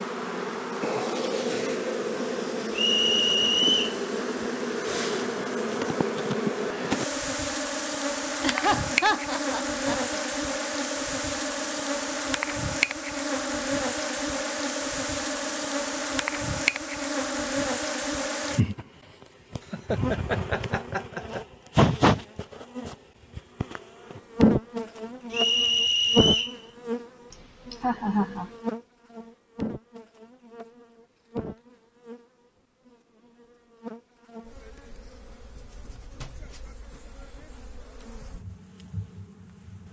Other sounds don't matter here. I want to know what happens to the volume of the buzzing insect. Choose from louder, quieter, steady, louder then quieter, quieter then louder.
quieter.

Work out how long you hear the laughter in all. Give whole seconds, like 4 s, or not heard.
5 s.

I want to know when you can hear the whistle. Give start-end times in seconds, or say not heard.
2.7-4.0, 25.3-26.6.